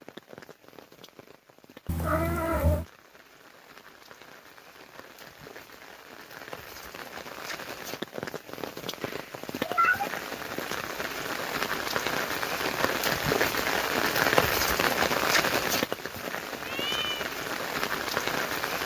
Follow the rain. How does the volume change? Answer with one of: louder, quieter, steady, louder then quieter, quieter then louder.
louder.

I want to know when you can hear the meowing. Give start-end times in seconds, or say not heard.
1.9-2.9, 9.0-10.1, 16.6-17.3.